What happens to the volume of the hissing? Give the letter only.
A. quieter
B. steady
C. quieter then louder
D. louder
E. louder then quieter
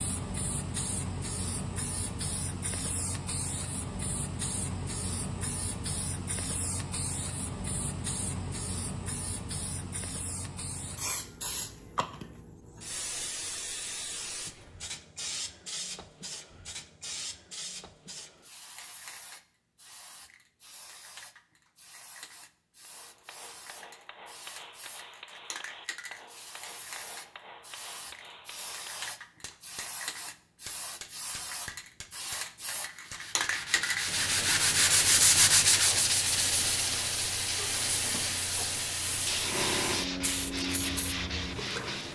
C.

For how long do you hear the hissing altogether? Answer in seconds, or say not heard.
42 s.